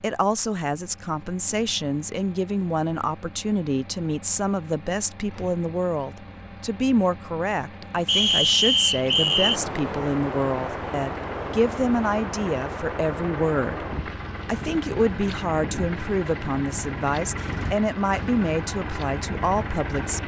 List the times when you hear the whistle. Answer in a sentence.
You can hear the whistle from 8.1 to 9.6 s.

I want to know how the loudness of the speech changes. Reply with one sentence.
The loudness of the speech stays about the same.